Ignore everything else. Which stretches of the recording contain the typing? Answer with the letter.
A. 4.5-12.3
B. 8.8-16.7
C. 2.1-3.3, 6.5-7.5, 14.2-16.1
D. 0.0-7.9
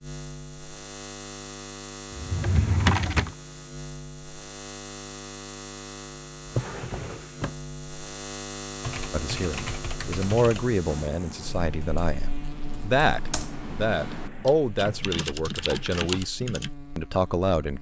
B.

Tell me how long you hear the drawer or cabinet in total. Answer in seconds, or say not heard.
4 s.